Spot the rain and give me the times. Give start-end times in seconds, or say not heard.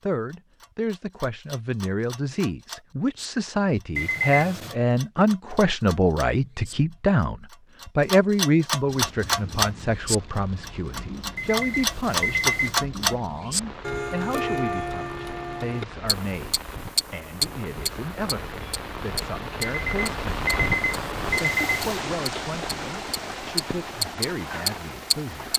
8.8-25.5.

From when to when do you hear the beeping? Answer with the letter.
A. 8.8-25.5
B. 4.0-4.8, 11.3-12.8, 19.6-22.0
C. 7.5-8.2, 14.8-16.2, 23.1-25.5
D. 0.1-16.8
B.